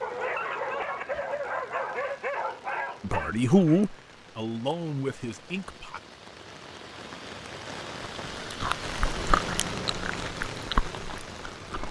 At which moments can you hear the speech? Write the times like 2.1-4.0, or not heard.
3.0-6.0.